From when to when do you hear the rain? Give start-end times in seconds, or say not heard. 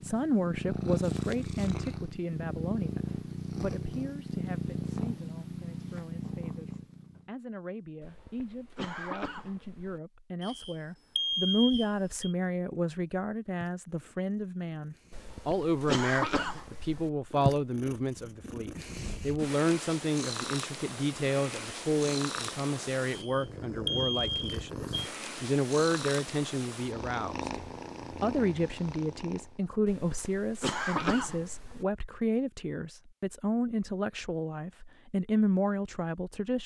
not heard.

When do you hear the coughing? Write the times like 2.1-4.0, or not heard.
8.0-10.0, 15.1-17.1, 29.9-31.9.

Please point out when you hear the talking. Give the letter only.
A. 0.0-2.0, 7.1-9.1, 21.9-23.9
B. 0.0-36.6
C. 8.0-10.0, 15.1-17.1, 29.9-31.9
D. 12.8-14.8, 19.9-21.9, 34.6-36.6
B.